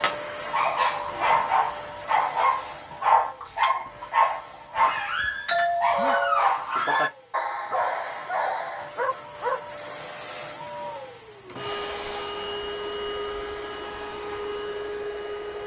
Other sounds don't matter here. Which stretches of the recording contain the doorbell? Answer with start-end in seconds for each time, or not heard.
4.8-6.5.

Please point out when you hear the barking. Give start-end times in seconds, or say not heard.
0.0-9.6.